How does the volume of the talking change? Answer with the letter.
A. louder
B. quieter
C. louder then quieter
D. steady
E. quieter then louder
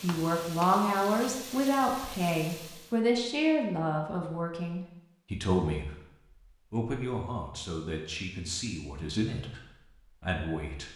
B.